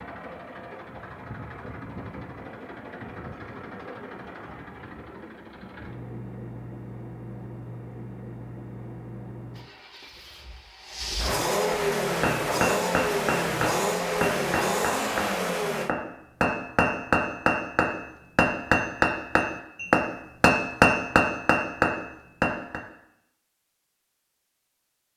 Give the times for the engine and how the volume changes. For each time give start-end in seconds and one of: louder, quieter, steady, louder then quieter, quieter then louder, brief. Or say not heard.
0.0-15.9 louder.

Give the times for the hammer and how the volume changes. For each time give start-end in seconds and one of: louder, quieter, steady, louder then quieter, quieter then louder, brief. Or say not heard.
11.7-22.8 louder.